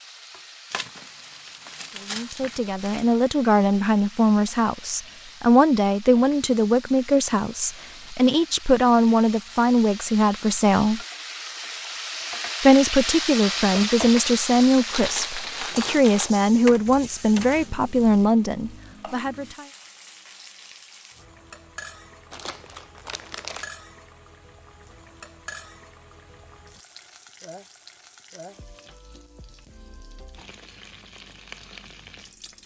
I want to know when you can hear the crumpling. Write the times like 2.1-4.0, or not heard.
0.7-3.1, 14.9-16.4, 22.3-23.7.